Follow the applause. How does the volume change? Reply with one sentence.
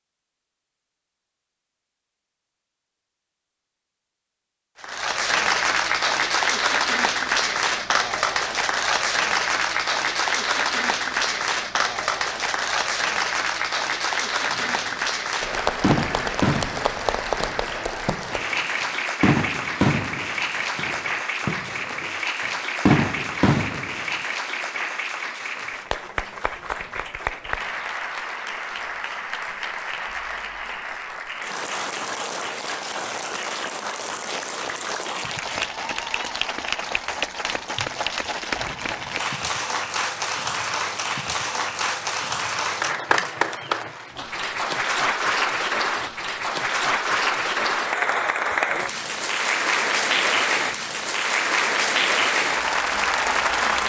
The loudness of the applause goes down, then up.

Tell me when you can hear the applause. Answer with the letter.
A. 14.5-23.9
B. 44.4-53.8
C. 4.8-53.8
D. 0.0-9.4
C.